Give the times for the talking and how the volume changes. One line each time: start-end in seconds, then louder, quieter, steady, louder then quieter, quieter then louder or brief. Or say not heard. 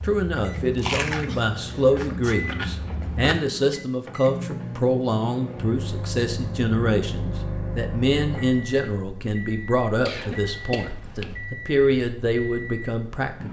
0.0-13.4 steady.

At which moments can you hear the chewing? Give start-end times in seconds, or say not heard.
0.0-3.4.